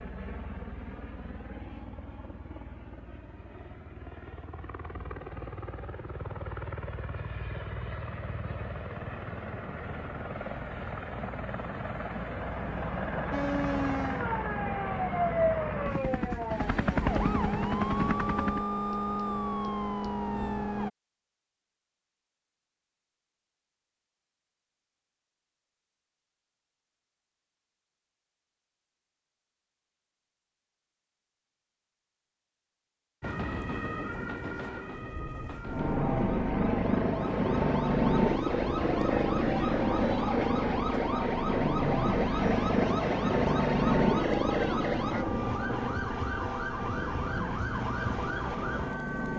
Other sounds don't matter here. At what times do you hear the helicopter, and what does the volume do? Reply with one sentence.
You can hear the helicopter from 0.0 to 18.7 s, getting louder; and from 35.6 to 49.3 s, getting quieter.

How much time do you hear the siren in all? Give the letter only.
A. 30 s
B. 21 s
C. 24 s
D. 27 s
C.